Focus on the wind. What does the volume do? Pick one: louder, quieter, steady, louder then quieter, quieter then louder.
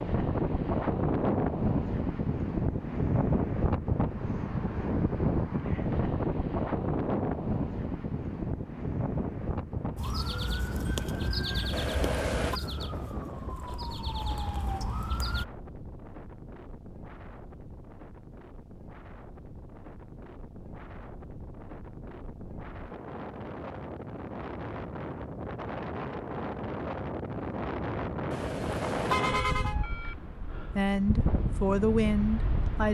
quieter then louder.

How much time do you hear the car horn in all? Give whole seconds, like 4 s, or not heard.
2 s.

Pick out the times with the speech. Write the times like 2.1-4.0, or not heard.
30.8-32.8.